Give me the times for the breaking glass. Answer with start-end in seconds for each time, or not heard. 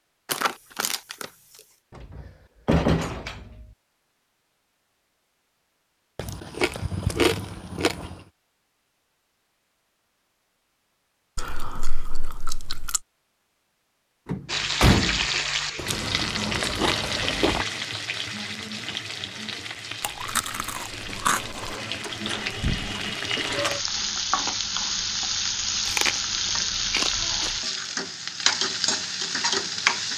not heard.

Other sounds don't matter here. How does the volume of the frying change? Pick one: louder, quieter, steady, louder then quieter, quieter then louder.
quieter then louder.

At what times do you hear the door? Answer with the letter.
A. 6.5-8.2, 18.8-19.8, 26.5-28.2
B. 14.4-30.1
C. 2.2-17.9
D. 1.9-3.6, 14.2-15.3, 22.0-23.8
D.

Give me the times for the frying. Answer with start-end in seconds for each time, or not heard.
14.4-30.1.